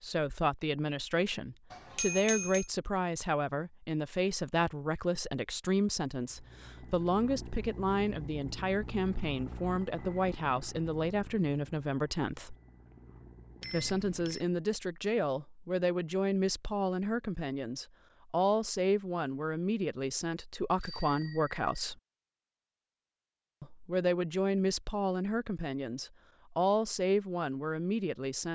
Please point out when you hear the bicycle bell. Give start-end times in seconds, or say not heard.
1.7-2.7, 13.6-14.4, 20.8-21.6.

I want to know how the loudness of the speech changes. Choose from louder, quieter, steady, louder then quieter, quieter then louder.
steady.